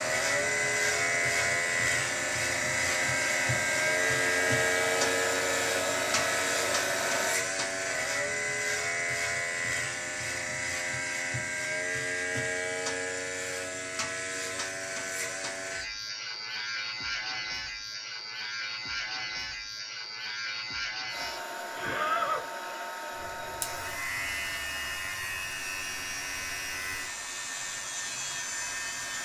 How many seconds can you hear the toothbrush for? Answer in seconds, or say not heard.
not heard.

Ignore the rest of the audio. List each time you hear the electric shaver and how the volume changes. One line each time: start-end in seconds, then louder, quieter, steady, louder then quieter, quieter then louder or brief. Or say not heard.
0.0-29.1 quieter.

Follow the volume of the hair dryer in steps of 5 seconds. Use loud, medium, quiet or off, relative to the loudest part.
medium, loud, off, off, medium, medium.